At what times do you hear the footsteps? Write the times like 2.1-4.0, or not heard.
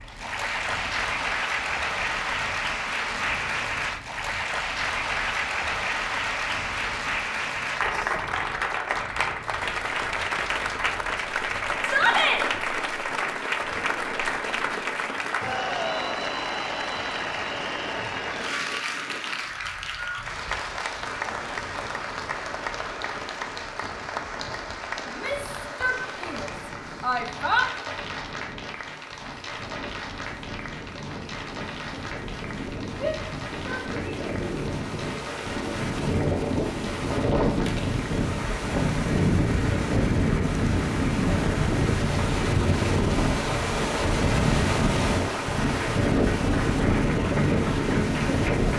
not heard.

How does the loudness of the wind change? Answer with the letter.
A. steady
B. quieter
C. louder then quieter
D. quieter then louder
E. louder
E.